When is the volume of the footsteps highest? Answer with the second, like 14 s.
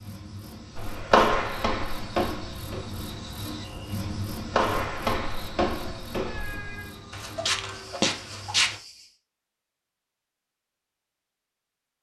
1 s.